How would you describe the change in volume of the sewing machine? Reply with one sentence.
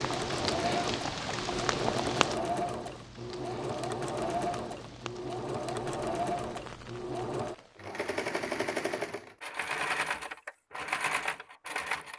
The loudness of the sewing machine stays about the same.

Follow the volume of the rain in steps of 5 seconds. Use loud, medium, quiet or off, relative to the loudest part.
loud, quiet, off.